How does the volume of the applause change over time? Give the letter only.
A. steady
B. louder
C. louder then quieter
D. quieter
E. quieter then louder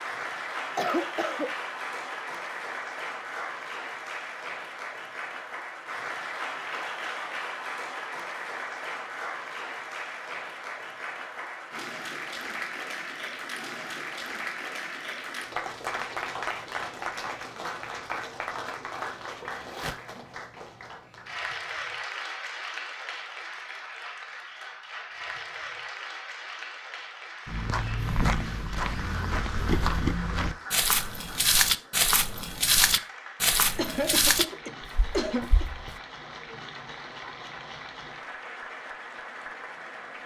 D.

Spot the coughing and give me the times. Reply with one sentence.
The coughing can be heard from 0.8 to 1.9 s and from 33.8 to 35.6 s.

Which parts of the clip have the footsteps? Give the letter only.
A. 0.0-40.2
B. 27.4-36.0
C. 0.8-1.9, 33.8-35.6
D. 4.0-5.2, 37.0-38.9
B.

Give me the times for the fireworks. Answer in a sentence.
You can't hear the fireworks here.